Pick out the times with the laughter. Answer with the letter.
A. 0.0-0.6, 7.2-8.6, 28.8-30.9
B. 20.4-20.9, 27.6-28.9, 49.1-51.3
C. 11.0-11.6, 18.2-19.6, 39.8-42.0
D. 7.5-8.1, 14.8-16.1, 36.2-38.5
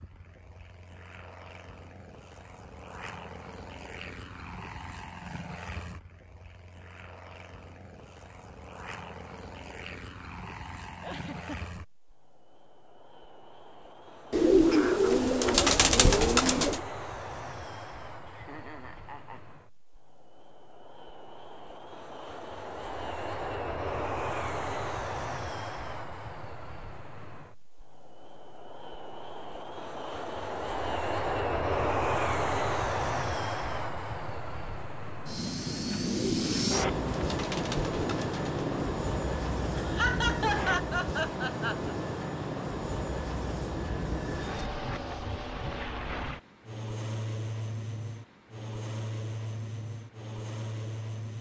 C.